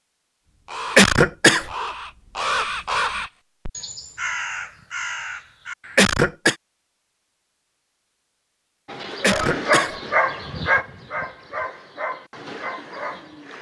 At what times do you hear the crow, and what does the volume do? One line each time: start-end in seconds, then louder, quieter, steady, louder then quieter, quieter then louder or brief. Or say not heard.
0.7-6.0 louder then quieter.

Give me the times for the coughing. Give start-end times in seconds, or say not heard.
0.9-1.7, 6.0-6.5, 9.2-9.9.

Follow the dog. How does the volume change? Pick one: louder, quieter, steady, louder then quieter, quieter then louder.
quieter.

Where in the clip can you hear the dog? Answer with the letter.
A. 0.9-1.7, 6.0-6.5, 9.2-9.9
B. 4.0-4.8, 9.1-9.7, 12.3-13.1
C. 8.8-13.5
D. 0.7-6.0
C.